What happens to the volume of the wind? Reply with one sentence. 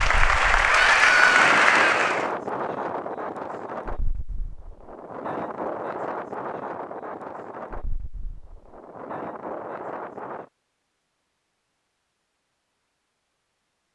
The loudness of the wind goes down.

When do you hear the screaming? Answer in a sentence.
You can hear the screaming from 0.7 to 2.2 s.